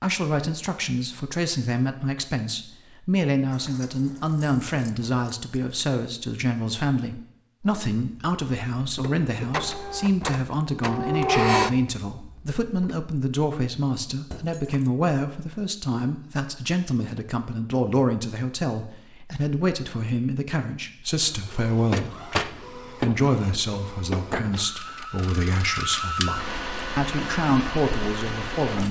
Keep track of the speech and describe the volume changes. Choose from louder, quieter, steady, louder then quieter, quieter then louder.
steady.